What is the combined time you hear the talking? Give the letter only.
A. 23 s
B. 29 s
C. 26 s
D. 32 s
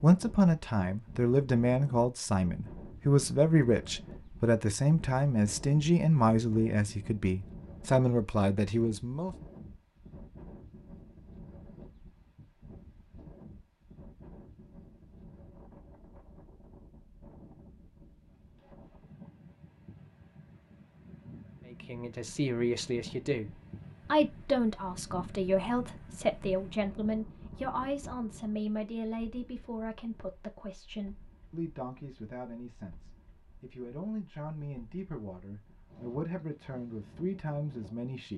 C.